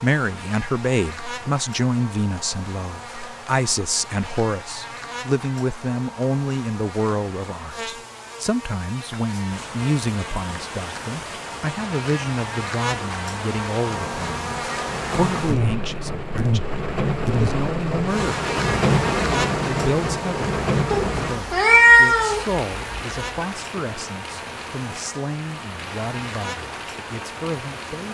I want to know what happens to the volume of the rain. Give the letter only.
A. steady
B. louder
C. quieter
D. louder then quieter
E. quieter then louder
D.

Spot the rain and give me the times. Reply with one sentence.
The rain can be heard from 9.5 to 28.1 s.